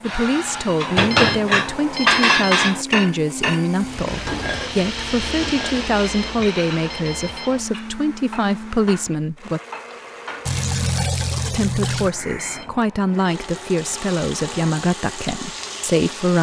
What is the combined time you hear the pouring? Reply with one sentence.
The pouring can be heard for 3 seconds in total.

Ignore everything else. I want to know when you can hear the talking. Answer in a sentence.
The talking can be heard from 0.0 to 9.6 s and from 11.4 to 16.3 s.